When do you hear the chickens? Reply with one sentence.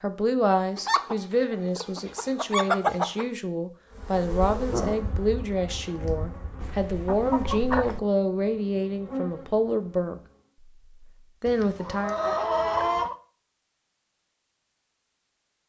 The chickens can be heard from 0.8 to 3.2 s, from 6.6 to 8.0 s and from 11.4 to 13.2 s.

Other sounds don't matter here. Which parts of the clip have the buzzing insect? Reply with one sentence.
The buzzing insect can be heard from 4.0 to 10.3 s.